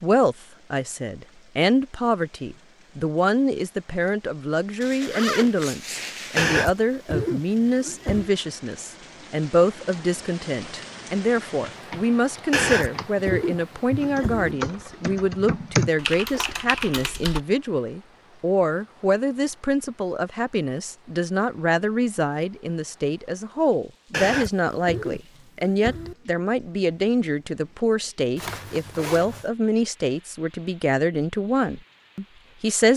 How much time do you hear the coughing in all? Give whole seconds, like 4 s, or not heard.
6 s.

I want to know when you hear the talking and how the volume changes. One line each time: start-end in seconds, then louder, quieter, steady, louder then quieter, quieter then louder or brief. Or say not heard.
0.0-32.9 steady.